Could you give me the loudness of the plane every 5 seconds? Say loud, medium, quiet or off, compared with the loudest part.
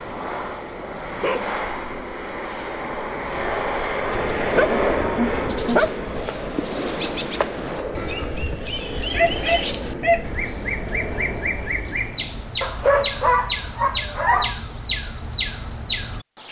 loud, loud, medium, off.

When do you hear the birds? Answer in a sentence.
The birds can be heard from 4.1 to 16.4 s.